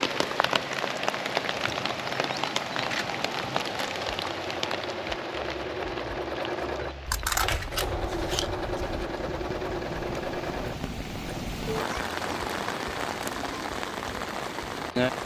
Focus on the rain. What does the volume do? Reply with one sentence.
The loudness of the rain goes down, then up.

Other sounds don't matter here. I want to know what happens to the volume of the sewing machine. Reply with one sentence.
The loudness of the sewing machine goes up, then down.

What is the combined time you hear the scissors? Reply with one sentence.
The scissors can be heard for 2 seconds in total.